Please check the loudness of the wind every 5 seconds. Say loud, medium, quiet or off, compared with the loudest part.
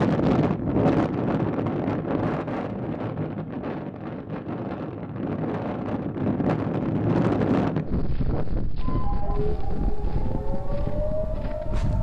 loud, loud, medium.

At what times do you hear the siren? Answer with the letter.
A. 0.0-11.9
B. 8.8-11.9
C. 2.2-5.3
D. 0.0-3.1
B.